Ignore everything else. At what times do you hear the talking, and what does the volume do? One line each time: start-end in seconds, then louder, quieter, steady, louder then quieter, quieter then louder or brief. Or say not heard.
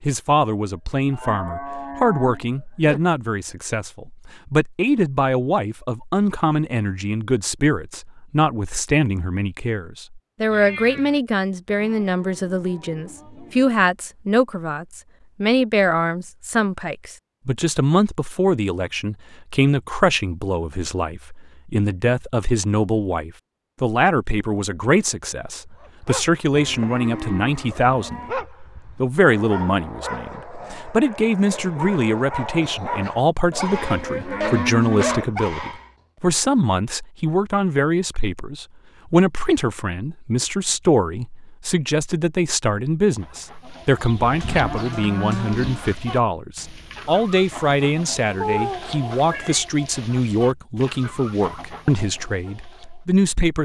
0.0-53.5 steady.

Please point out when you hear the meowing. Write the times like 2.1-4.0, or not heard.
10.5-11.2, 48.4-49.6.